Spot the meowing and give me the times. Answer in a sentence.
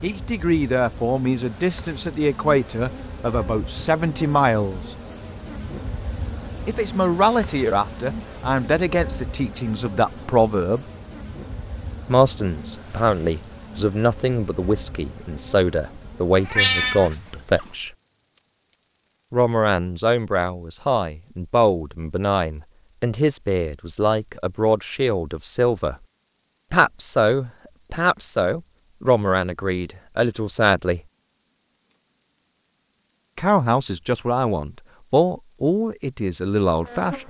You can hear the meowing from 16.4 to 17.6 s.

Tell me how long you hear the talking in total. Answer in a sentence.
You can hear the talking for 30 seconds altogether.